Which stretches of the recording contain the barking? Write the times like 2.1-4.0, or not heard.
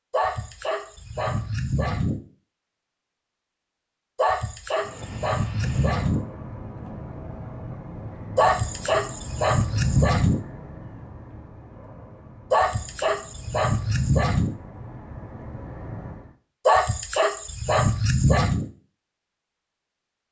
0.1-2.2, 4.2-6.2, 8.3-10.4, 12.5-14.6, 16.6-18.7.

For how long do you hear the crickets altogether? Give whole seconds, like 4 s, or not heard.
not heard.